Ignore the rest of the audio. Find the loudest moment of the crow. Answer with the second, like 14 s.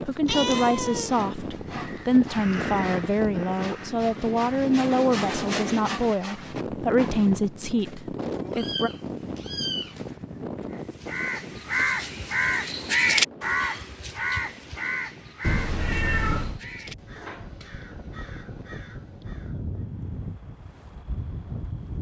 13 s.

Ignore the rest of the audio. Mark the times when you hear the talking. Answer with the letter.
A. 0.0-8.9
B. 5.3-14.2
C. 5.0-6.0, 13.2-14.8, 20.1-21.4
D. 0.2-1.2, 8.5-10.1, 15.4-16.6
A.